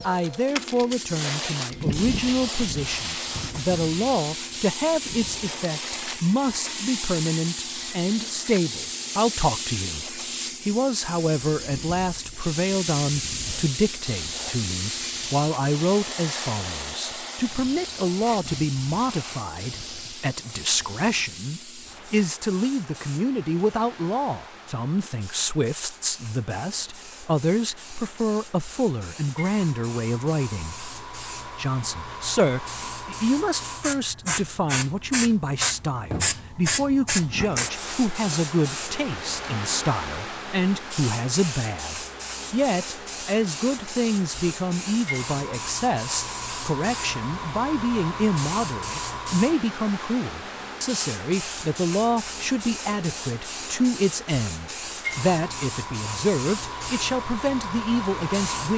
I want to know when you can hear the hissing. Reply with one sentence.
You can hear the hissing from 0.0 to 58.7 s.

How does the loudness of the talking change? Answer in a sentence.
The volume of the talking stays about the same.